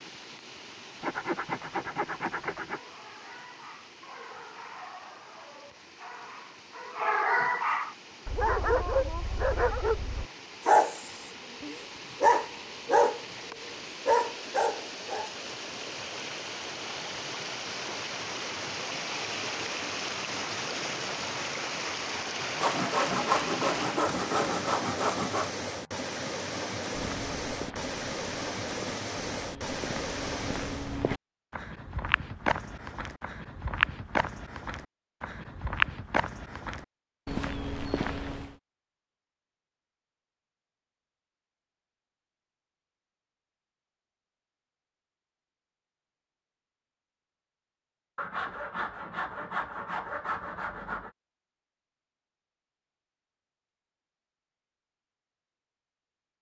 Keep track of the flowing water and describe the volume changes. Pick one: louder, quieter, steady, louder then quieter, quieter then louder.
louder.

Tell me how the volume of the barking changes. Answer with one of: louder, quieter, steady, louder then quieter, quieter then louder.
louder.